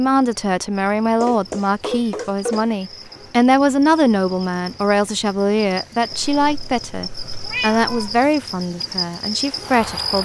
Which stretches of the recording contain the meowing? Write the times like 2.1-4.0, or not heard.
1.2-2.6, 6.1-8.2.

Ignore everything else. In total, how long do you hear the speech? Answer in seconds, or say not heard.
10 s.